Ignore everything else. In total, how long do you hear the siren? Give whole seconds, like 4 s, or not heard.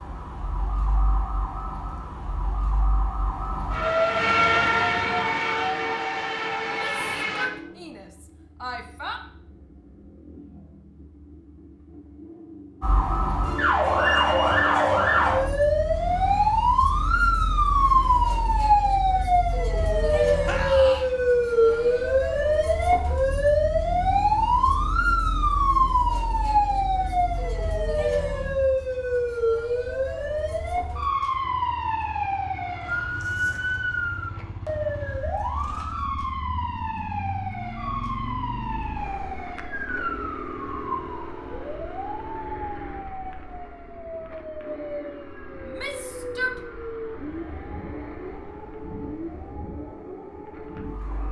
46 s.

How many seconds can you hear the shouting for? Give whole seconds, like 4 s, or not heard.
4 s.